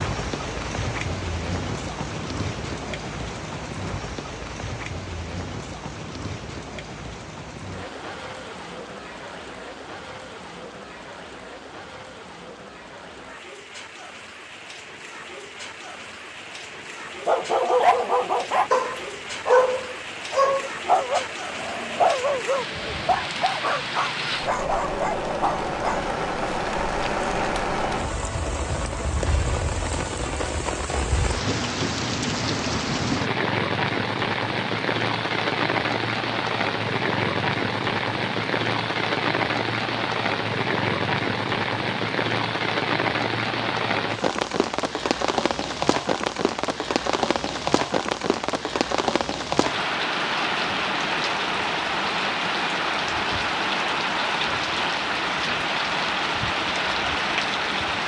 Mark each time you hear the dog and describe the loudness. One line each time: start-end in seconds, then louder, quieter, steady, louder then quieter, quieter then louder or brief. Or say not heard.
17.2-26.0 quieter.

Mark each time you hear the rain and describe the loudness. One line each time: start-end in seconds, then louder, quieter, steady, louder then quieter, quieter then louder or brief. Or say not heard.
0.0-58.0 louder.